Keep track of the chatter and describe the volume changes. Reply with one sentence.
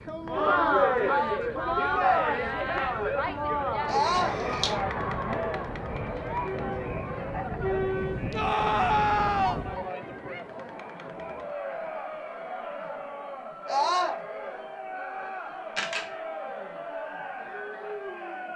The volume of the chatter goes down.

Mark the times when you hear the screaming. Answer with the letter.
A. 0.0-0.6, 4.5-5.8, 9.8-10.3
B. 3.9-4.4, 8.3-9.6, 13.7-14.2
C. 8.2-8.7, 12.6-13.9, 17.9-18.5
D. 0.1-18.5
B.